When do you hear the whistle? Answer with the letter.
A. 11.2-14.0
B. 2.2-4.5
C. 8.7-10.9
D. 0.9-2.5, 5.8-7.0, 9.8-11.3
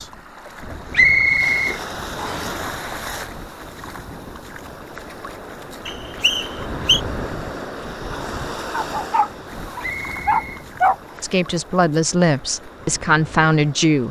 D.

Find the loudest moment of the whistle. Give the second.
1 s.